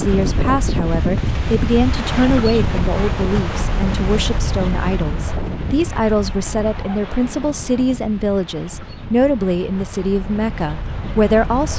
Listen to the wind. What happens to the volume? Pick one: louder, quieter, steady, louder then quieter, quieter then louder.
quieter.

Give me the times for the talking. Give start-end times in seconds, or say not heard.
0.0-11.7.